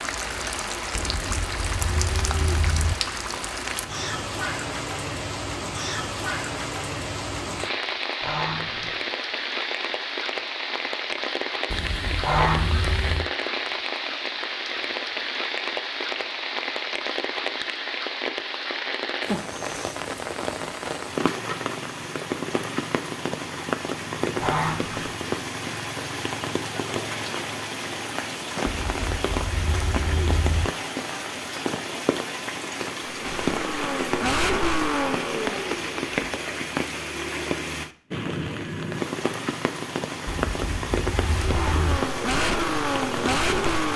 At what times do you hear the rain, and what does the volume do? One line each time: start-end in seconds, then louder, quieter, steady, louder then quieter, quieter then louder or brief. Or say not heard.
0.0-43.9 steady.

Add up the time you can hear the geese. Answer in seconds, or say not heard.
3 s.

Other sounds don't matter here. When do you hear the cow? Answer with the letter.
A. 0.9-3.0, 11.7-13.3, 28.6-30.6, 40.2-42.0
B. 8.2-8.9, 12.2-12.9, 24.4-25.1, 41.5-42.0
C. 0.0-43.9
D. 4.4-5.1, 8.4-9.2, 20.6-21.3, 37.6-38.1
A.